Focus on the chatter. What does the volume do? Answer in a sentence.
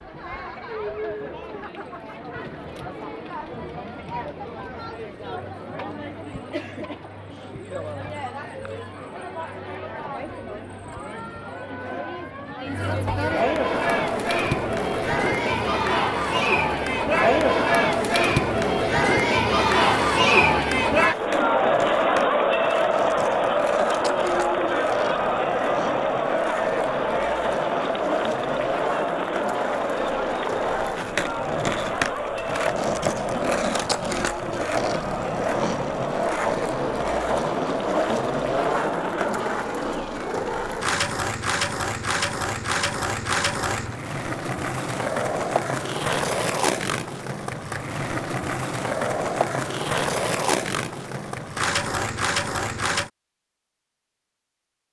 The volume of the chatter goes up, then down.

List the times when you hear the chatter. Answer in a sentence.
You can hear the chatter from 0.0 to 39.4 s.